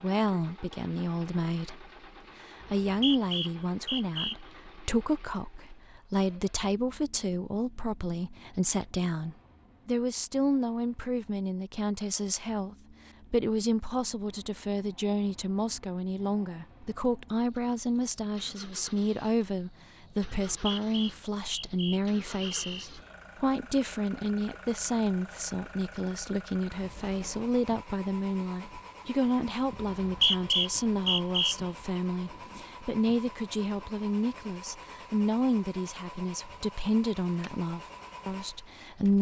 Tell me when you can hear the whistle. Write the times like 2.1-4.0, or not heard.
2.6-4.3, 20.4-22.9, 29.8-31.6.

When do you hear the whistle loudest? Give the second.
30 s.